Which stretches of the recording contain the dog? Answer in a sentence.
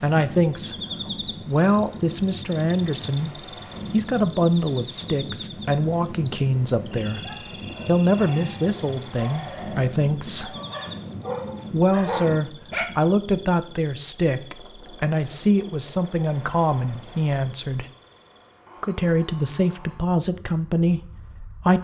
You can hear the dog from 7.1 to 12.8 s.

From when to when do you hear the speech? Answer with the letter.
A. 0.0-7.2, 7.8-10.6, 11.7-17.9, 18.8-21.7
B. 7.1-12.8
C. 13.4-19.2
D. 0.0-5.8
A.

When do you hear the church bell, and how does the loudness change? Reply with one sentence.
You can't hear the church bell here.